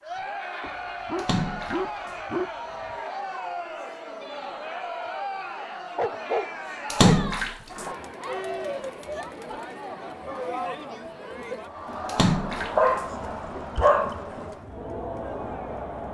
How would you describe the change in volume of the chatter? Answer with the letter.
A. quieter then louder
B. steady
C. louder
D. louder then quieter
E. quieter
B.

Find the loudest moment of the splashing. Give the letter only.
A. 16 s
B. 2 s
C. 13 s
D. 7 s
D.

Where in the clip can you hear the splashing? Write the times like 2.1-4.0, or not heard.
1.1-2.1, 6.9-7.8, 12.1-13.1.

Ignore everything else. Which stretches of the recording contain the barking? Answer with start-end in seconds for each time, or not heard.
0.6-3.0, 6.0-8.0, 12.8-14.2.